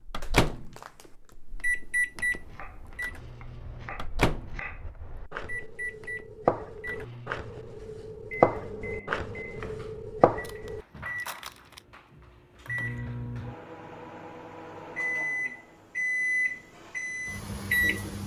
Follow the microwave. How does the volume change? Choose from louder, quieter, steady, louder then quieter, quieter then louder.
quieter then louder.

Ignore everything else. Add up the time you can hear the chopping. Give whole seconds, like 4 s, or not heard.
9 s.